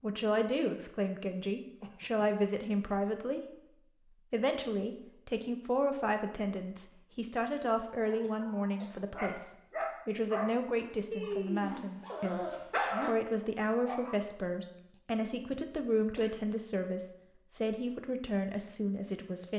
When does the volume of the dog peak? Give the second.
13 s.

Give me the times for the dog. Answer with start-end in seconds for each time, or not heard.
8.1-14.2.